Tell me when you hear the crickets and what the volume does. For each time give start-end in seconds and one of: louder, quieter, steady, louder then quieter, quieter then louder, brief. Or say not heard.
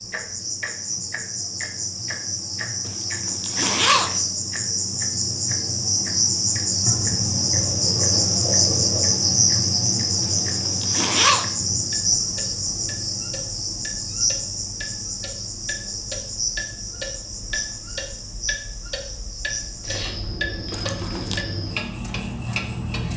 0.0-23.1 louder then quieter.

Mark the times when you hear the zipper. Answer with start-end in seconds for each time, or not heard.
2.9-4.2, 10.2-11.4, 20.7-21.4.